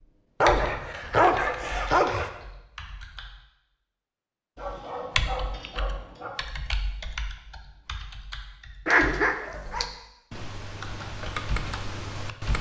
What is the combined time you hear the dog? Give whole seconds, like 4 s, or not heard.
5 s.